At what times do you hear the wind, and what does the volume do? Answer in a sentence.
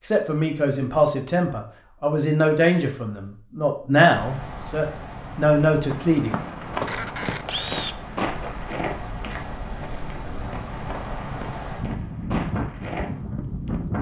You can hear the wind from 4.2 to 13.9 s, getting louder.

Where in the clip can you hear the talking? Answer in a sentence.
The talking can be heard from 0.0 to 6.4 s.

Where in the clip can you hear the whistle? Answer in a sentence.
The whistle can't be heard in this clip.